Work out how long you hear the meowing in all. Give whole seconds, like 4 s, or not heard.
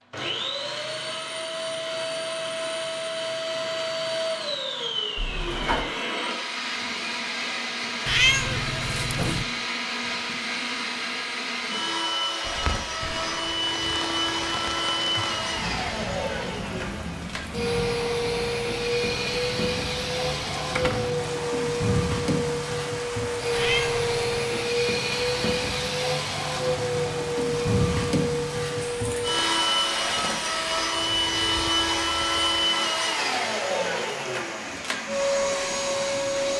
2 s.